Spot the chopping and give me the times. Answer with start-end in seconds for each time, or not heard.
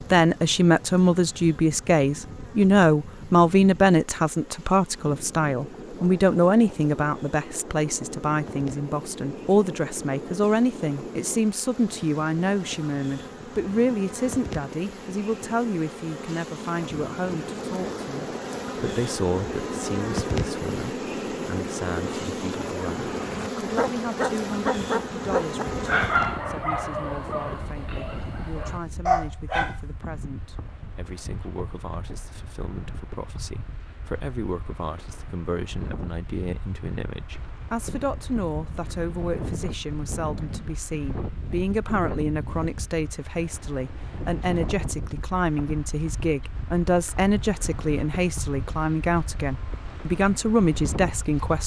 not heard.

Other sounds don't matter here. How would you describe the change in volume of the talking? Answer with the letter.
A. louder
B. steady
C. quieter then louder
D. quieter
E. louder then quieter
C.